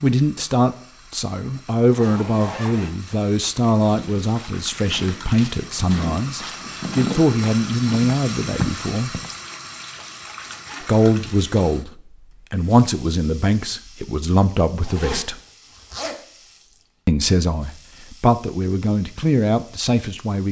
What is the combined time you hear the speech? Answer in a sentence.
You can hear the speech for 17 seconds altogether.